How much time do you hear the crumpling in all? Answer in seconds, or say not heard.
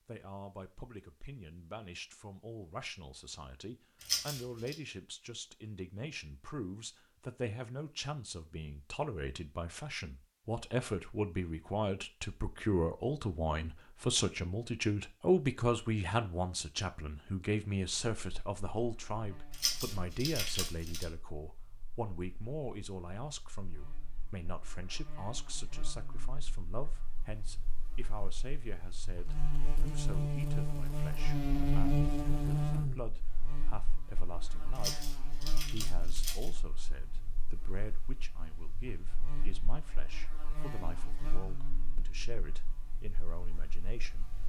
4 s.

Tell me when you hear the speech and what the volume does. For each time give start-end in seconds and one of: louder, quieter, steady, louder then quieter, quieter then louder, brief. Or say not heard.
0.1-44.4 louder then quieter.